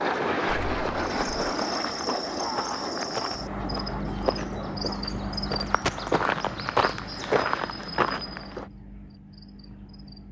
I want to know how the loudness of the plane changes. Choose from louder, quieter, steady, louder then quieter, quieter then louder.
quieter.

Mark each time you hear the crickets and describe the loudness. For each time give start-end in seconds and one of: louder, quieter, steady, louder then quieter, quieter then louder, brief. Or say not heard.
0.1-10.2 quieter.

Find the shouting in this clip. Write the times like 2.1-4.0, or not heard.
not heard.